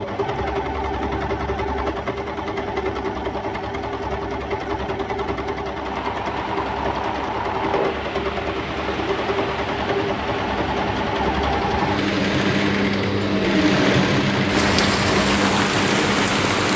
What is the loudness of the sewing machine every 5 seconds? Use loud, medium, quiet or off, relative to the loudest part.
medium, medium, loud, loud.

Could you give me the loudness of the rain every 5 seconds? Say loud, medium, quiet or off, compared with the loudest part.
off, medium, medium, loud.